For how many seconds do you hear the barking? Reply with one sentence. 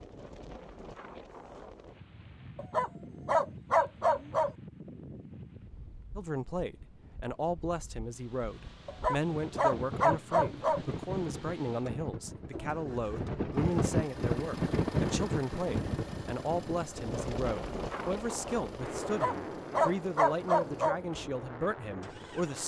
You can hear the barking for 6 seconds altogether.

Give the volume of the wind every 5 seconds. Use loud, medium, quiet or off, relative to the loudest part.
quiet, quiet, loud, loud, medium.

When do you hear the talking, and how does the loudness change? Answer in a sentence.
The talking can be heard from 6.2 to 22.6 s, at a steady volume.